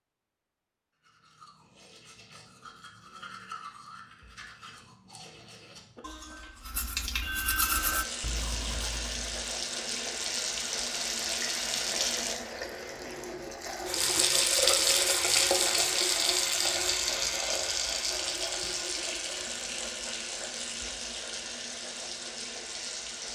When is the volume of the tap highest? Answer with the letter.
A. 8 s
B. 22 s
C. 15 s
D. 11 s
C.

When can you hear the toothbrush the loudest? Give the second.
8 s.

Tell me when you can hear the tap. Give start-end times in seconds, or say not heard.
7.7-23.3.